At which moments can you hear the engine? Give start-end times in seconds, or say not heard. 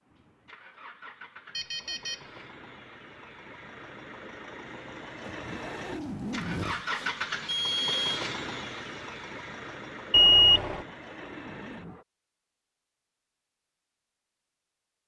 0.0-12.1.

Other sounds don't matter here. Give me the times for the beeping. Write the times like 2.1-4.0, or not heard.
1.6-2.2, 6.7-8.2, 10.1-10.8.